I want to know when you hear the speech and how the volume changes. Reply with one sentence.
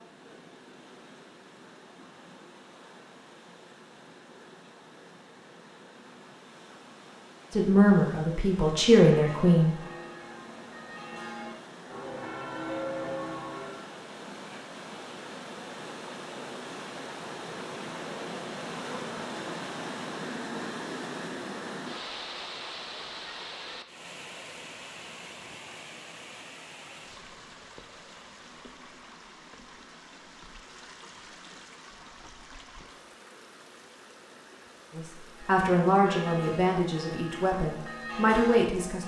The speech can be heard briefly from 7.5 to 9.8 s; and from 35.0 to 39.0 s, getting quieter then louder.